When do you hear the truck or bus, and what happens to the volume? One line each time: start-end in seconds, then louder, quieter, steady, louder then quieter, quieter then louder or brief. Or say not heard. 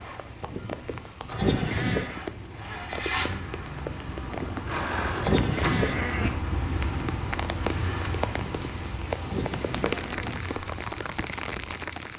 0.0-12.1 louder then quieter.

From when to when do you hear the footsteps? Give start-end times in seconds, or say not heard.
not heard.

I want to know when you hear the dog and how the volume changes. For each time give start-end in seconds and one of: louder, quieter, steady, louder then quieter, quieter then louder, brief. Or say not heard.
not heard.